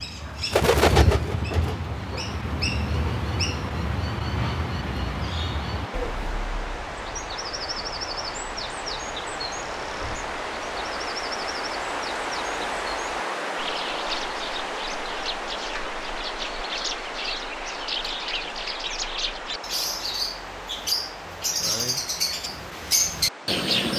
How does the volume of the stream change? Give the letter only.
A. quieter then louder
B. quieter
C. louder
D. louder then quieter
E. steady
D.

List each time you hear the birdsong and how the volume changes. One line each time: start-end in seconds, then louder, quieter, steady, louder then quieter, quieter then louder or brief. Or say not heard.
0.0-23.9 quieter then louder.